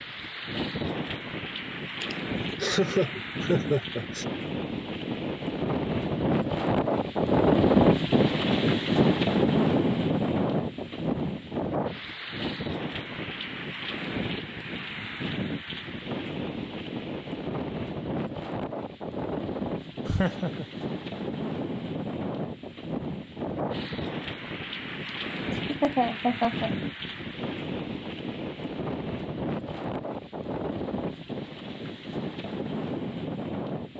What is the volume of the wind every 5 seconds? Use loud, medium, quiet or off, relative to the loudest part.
medium, loud, medium, medium, medium, medium, medium.